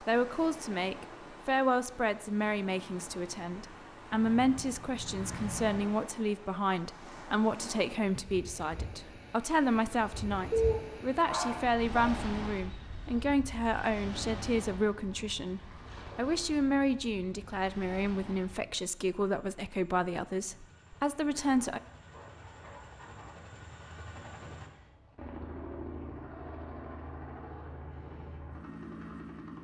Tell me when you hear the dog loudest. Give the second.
11 s.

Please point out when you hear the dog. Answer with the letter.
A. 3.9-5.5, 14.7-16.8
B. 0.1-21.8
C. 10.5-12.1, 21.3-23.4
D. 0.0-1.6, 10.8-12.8
C.